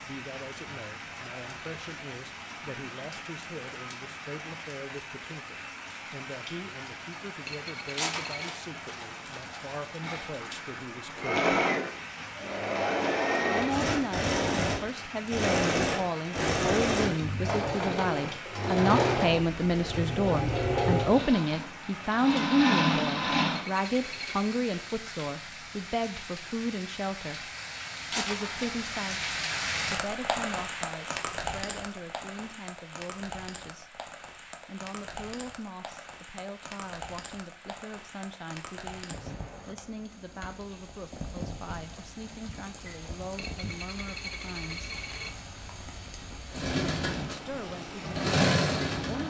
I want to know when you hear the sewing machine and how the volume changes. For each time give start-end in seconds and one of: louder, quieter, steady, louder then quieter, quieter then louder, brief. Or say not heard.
11.2-23.6 steady
46.5-49.2 brief.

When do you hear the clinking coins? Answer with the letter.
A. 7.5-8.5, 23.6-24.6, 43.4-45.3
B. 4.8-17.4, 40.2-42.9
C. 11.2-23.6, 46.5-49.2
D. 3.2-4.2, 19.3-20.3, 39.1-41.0
A.